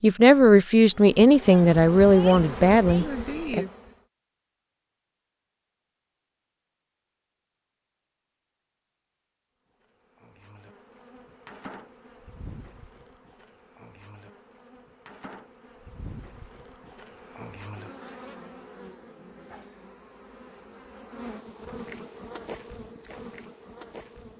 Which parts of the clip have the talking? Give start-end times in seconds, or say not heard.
0.0-3.6.